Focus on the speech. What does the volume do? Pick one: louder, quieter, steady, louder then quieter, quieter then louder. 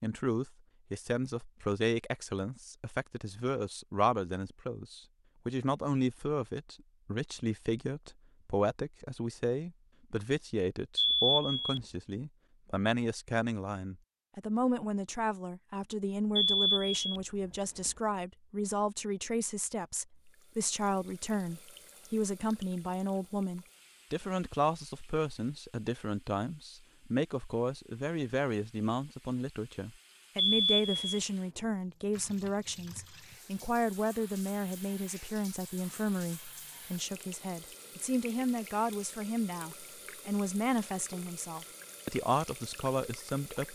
steady.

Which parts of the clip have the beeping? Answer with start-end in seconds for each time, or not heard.
10.9-11.8, 16.4-17.2, 30.4-31.2.